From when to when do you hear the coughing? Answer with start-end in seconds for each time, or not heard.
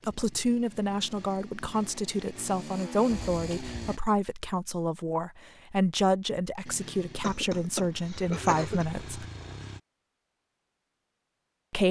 3.3-3.9, 6.8-8.8.